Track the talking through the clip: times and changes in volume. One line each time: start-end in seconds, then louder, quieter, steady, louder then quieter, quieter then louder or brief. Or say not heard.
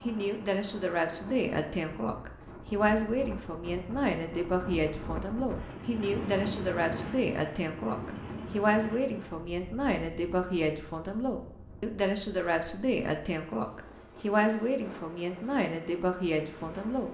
0.0-17.1 steady.